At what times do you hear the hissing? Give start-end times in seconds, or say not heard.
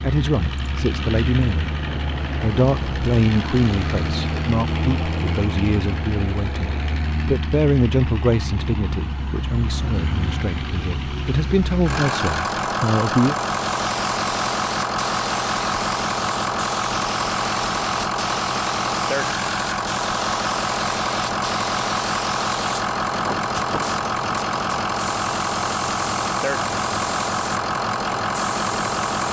13.5-29.2.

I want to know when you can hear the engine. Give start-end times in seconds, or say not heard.
0.0-29.2.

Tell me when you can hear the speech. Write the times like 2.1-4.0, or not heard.
0.0-1.8, 2.4-13.3.